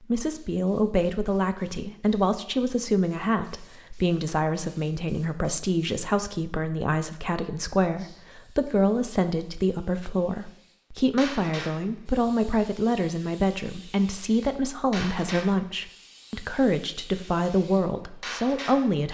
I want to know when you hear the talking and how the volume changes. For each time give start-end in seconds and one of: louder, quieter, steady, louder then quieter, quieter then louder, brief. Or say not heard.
0.0-19.0 steady.